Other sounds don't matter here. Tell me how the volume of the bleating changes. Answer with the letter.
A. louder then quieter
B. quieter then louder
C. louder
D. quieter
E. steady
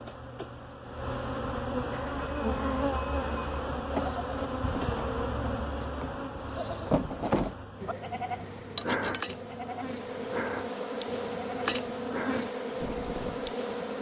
A.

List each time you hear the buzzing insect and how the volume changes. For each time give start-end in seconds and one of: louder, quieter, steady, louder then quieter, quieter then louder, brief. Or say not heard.
0.0-13.9 quieter then louder.